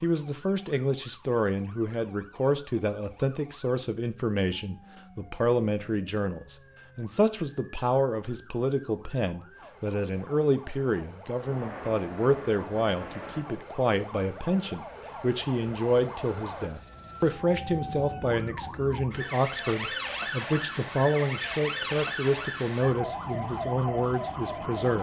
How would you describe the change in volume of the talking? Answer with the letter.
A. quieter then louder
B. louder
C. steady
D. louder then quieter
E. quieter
C.